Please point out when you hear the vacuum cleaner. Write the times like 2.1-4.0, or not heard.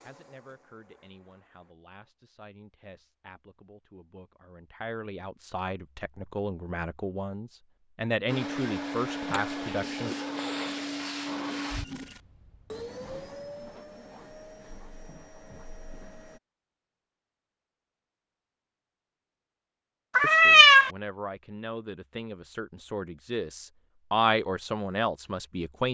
0.0-1.8, 8.2-16.4.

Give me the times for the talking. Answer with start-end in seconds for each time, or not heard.
0.0-10.2, 20.2-25.8.